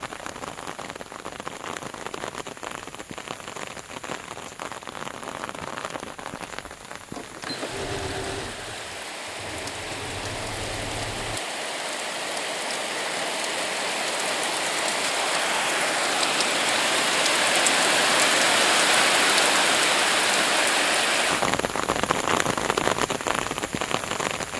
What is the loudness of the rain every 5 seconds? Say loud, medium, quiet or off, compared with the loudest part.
quiet, quiet, medium, loud, loud.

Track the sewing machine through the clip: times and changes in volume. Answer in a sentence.
You can hear the sewing machine from 7.2 to 11.4 s, getting quieter then louder.